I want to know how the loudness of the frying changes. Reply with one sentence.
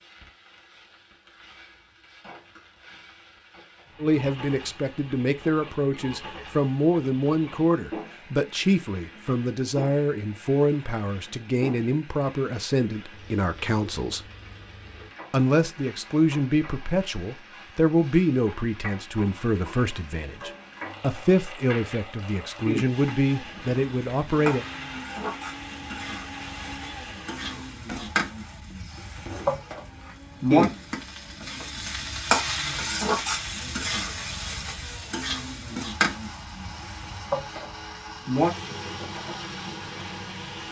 The loudness of the frying goes up.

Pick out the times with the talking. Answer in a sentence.
You can hear the talking from 4.0 to 14.2 s and from 15.3 to 24.6 s.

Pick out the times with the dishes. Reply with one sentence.
You can't hear the dishes here.